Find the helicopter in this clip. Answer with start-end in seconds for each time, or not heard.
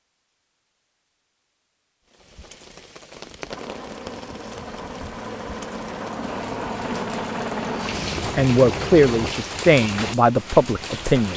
3.5-9.3.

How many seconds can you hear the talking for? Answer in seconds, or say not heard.
3 s.